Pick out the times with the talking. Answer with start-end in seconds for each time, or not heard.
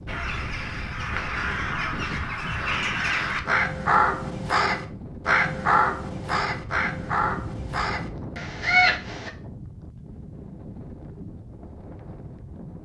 not heard.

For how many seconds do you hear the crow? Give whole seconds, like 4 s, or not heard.
9 s.